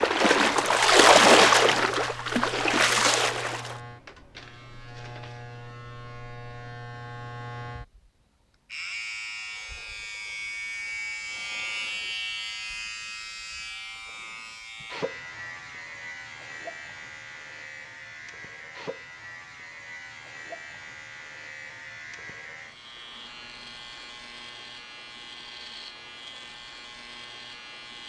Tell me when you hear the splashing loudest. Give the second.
1 s.